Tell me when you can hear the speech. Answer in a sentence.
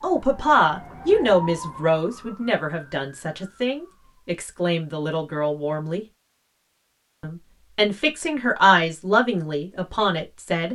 You can hear the speech from 0.0 to 6.0 s and from 7.2 to 10.7 s.